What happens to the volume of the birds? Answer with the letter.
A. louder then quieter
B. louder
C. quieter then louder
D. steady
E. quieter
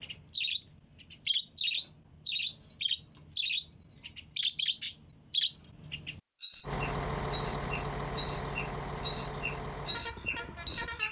B.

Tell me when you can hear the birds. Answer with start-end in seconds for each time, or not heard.
0.0-11.0.